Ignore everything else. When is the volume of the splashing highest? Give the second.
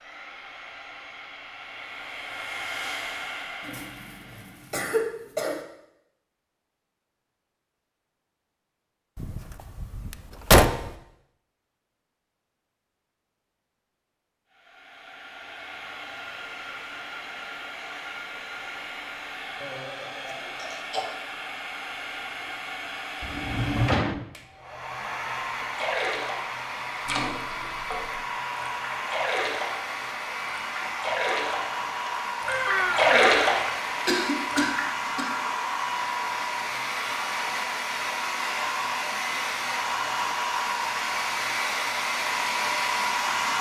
33 s.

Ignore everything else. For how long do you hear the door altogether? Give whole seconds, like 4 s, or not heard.
4 s.